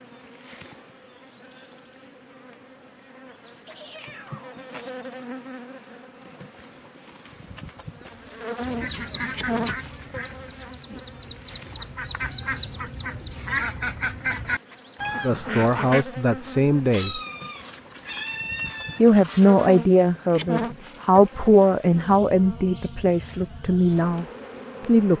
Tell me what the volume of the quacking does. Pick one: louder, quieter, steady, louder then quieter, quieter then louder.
quieter then louder.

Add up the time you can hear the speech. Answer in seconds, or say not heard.
8 s.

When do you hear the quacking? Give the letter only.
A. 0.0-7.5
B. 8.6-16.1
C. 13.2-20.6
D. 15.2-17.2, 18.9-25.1
B.